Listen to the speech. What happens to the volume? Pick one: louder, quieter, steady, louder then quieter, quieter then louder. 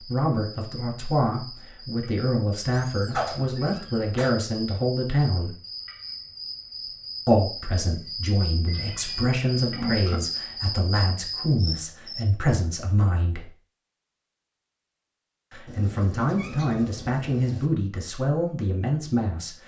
steady.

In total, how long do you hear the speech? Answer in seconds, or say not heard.
16 s.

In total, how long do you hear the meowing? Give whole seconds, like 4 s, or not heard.
5 s.